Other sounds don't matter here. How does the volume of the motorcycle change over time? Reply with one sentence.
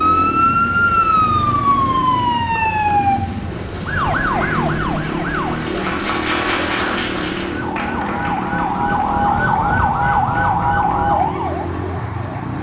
The loudness of the motorcycle stays about the same.